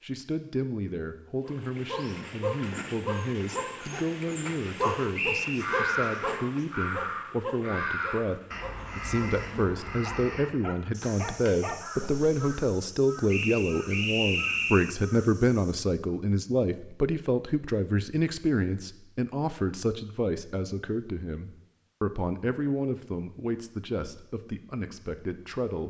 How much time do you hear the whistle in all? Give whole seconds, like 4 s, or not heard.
2 s.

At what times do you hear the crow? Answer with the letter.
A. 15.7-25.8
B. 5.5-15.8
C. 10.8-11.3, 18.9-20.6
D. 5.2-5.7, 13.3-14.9
B.